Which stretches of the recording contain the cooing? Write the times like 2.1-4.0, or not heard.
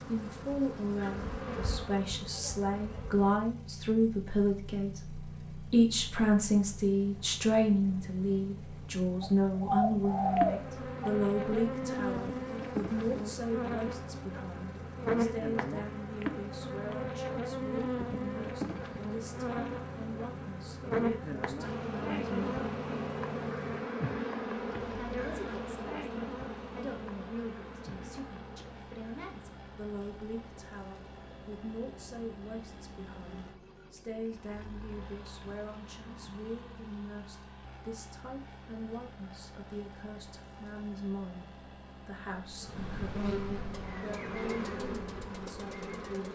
9.2-11.1.